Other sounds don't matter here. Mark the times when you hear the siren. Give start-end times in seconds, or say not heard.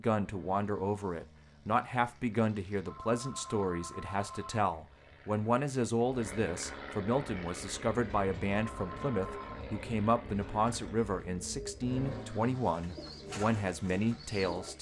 not heard.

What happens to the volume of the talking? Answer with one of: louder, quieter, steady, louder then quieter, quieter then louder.
steady.